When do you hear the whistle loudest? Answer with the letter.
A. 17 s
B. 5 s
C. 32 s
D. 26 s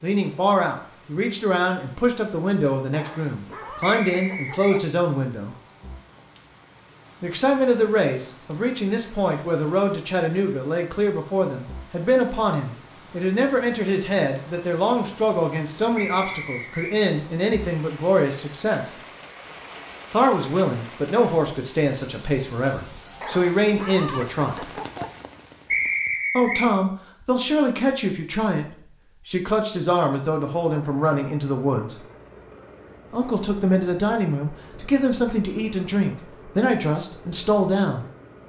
D.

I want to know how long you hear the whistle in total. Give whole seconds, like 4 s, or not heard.
3 s.